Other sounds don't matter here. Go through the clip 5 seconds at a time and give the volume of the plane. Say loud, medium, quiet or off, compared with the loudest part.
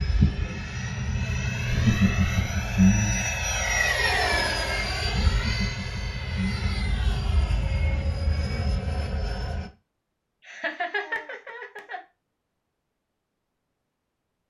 loud, medium, off.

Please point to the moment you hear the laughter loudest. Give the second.
3 s.